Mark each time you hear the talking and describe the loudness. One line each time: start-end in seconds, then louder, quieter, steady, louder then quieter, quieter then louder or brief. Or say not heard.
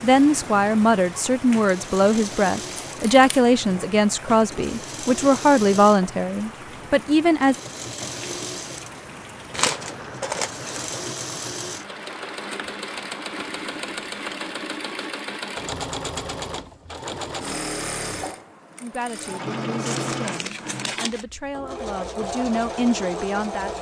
0.0-7.5 steady
18.8-23.7 louder.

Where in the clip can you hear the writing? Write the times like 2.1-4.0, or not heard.
not heard.